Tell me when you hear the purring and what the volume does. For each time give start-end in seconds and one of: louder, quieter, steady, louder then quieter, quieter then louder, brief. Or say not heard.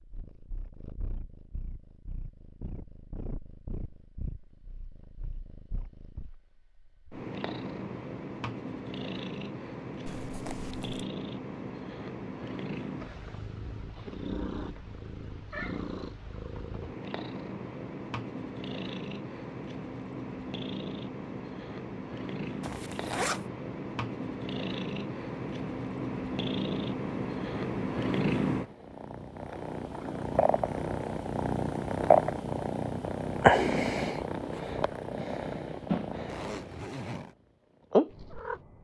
0.0-36.8 louder
37.9-38.8 brief.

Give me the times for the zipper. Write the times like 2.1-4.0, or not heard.
10.1-11.1, 22.6-23.4, 36.2-37.4.